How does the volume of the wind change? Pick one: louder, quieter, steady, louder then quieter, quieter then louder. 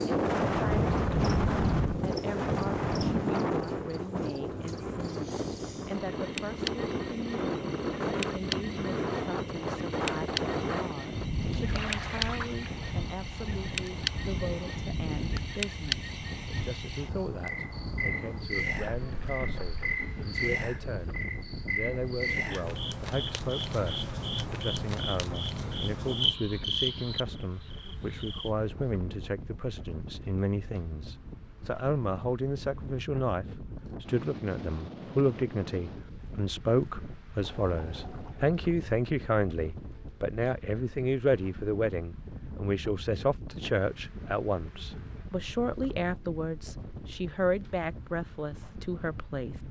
quieter.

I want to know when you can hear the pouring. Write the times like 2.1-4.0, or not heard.
11.6-12.9, 18.8-19.9, 37.4-38.5.